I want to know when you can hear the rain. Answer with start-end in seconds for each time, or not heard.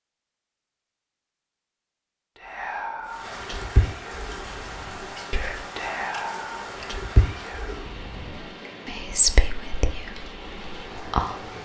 3.0-11.6.